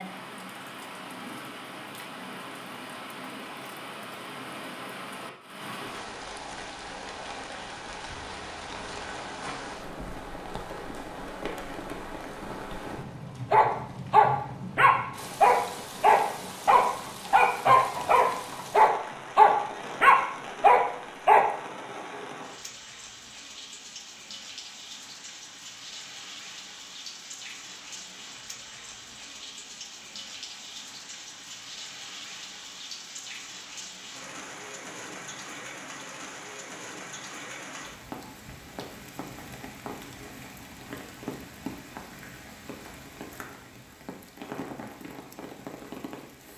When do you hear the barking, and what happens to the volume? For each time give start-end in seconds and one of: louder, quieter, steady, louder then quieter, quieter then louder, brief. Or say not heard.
13.5-21.5 steady.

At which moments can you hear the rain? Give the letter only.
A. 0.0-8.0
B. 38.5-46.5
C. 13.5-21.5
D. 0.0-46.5
D.